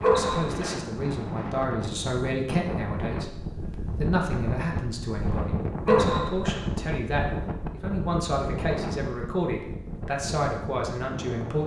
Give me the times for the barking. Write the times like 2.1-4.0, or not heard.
0.0-0.8, 5.8-6.6.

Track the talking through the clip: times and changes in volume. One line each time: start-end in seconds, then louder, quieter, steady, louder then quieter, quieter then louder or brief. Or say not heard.
0.0-11.6 steady.